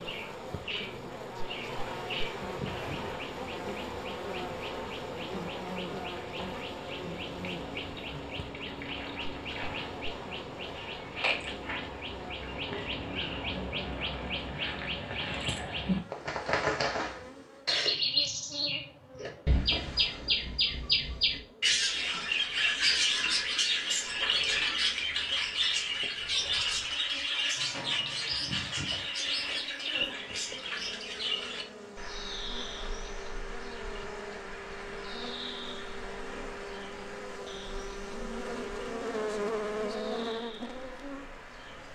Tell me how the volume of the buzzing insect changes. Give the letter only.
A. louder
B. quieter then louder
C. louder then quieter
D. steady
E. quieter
B.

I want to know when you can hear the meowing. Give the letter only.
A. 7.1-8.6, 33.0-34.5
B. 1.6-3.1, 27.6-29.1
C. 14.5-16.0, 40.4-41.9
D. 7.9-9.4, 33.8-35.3
B.